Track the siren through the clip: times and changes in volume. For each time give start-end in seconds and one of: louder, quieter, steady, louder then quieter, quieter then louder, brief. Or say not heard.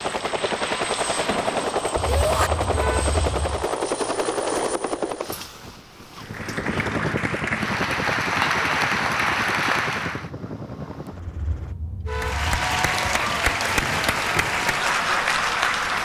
not heard.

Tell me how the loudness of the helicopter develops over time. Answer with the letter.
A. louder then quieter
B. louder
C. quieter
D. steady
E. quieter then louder
C.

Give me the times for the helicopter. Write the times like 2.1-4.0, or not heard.
0.0-11.8.